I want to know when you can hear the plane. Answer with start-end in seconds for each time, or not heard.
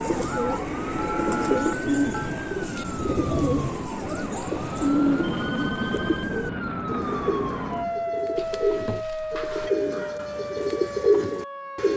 0.0-8.0.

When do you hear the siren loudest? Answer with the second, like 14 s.
8 s.